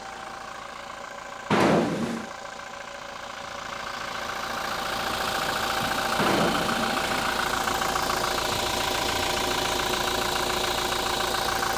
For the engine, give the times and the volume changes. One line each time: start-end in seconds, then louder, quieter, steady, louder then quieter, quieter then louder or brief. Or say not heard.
0.0-11.7 louder.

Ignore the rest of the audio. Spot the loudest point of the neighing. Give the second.
2 s.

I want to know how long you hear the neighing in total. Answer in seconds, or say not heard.
2 s.